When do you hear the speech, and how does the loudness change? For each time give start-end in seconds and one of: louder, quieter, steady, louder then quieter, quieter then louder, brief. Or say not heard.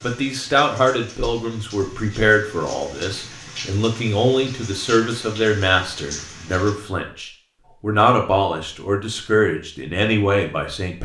0.0-11.0 steady.